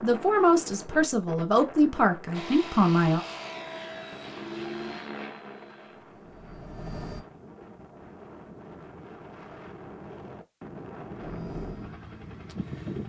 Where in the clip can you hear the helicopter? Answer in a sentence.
You can hear the helicopter from 2.3 to 7.2 s and from 11.2 to 13.0 s.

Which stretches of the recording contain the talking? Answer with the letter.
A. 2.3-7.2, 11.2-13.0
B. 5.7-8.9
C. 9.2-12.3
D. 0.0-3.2
D.